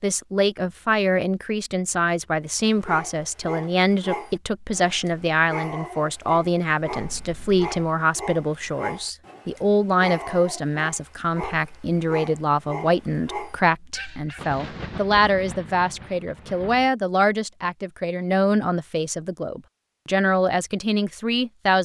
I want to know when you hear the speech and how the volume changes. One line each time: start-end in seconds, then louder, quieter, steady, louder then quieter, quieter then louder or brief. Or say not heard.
0.0-21.8 steady.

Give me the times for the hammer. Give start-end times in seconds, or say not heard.
not heard.